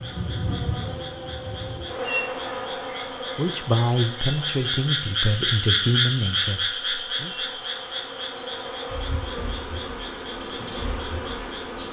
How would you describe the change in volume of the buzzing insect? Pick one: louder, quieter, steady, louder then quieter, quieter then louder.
quieter then louder.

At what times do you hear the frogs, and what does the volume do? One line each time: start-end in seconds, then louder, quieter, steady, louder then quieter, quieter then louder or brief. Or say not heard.
0.0-11.8 louder then quieter.